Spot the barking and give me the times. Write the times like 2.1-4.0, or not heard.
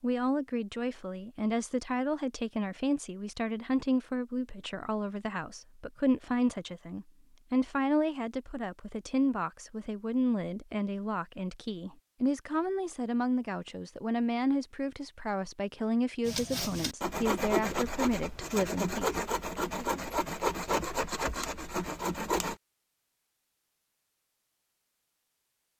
not heard.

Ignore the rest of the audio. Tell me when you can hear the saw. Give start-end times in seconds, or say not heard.
16.2-22.6.